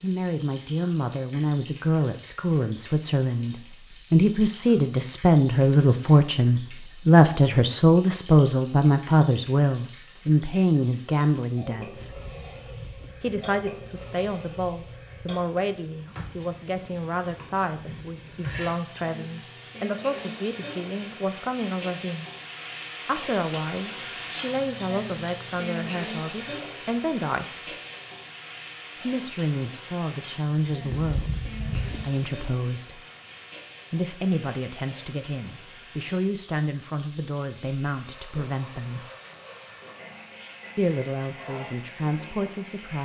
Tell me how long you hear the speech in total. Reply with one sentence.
The speech can be heard for 37 seconds in total.